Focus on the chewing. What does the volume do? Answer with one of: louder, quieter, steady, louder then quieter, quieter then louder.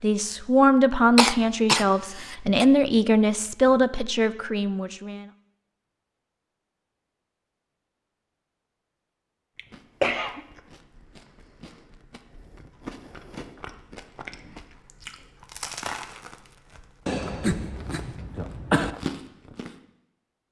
louder.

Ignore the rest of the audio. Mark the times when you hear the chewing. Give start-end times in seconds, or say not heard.
9.7-19.8.